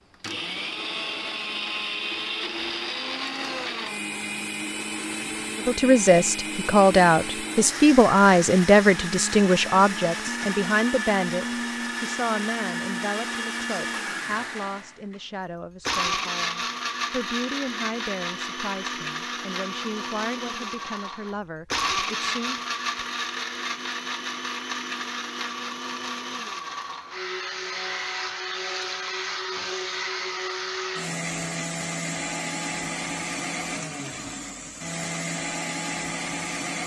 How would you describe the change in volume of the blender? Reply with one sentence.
The volume of the blender stays about the same.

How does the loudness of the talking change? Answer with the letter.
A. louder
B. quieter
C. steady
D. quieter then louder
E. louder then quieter
B.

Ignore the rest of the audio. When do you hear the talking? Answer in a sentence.
The talking can be heard from 5.7 to 22.6 s.